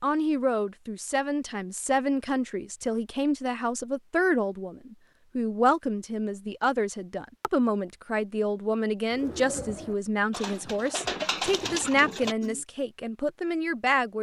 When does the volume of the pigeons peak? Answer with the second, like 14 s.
11 s.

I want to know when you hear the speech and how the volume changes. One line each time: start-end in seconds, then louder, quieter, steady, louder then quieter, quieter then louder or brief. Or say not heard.
0.0-14.1 steady.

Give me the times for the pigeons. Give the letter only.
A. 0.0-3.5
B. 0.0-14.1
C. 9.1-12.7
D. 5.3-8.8
C.